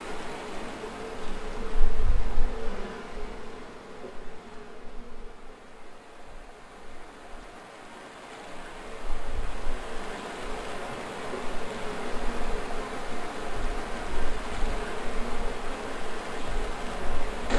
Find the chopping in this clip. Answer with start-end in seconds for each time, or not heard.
not heard.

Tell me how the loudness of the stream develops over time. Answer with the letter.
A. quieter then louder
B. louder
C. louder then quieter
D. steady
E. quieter
A.